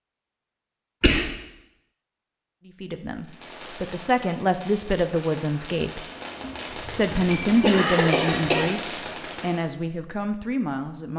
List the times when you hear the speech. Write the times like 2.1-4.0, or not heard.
2.6-6.0, 6.9-11.1.